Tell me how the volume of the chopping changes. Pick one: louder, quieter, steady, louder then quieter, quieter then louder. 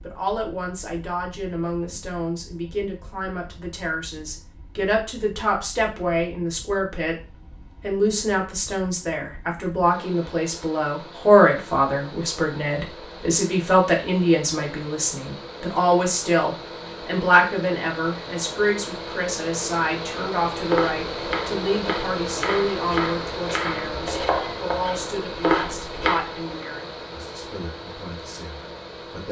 louder.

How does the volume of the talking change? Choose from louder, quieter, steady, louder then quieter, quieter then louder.
louder then quieter.